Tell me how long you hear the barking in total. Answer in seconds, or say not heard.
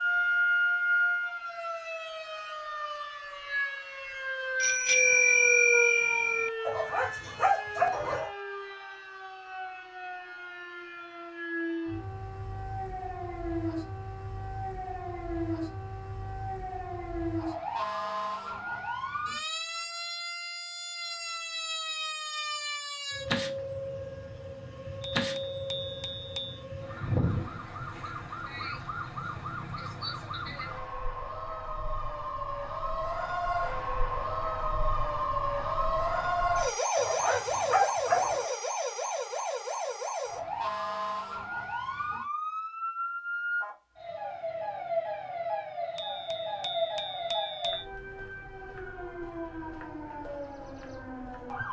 3 s.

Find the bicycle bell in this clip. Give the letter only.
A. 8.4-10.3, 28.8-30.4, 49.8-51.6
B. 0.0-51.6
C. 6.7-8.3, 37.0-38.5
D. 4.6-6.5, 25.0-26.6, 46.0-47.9
D.